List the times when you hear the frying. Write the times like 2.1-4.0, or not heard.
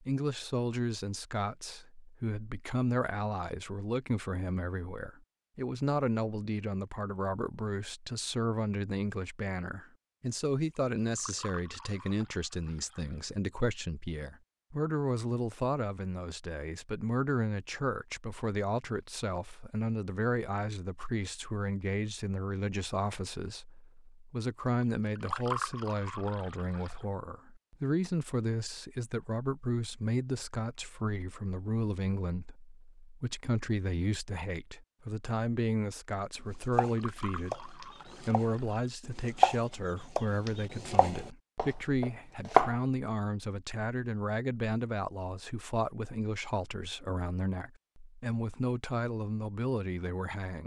not heard.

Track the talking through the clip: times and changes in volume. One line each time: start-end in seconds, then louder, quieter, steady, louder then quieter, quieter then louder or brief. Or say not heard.
0.0-50.6 steady.